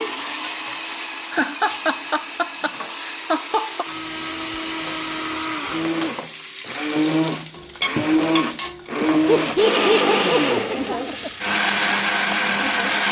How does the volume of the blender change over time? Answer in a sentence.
The volume of the blender goes up.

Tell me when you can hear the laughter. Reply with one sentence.
The laughter can be heard from 1.3 to 3.9 s and from 9.1 to 11.3 s.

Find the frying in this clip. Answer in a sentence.
You can hear the frying from 0.0 to 13.0 s.